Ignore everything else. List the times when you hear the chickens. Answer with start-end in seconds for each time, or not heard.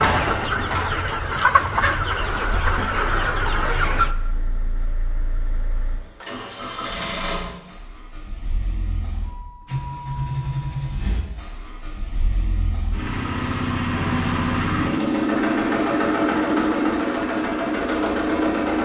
0.0-4.2.